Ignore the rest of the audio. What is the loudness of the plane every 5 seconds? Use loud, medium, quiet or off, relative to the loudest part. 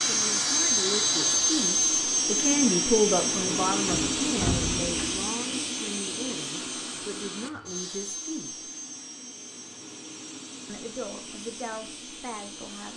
loud, medium, quiet.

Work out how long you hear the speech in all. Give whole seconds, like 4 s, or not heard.
11 s.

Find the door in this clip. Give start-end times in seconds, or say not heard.
3.9-5.2.